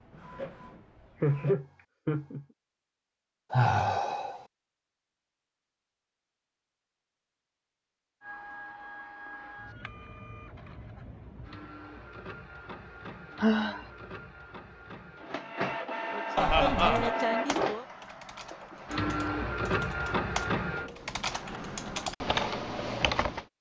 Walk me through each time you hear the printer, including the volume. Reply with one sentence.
The printer can be heard briefly from 0.0 to 1.6 s; and from 8.2 to 22.1 s, getting louder.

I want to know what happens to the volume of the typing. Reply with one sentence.
The loudness of the typing goes up.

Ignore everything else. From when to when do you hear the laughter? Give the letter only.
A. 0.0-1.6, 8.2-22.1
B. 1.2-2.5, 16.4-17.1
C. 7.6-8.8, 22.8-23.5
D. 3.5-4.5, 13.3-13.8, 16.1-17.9
B.